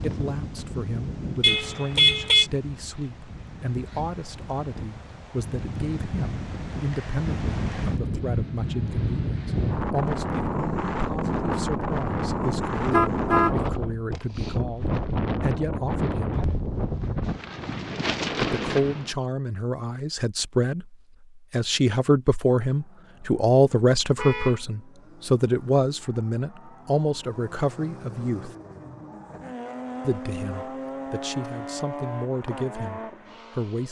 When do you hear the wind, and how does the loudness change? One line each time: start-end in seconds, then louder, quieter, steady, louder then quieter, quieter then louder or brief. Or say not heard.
0.0-19.1 louder.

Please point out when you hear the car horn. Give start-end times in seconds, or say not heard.
1.4-2.5, 12.8-13.6, 24.1-24.6.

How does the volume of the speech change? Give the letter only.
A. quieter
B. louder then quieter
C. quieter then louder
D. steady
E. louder
B.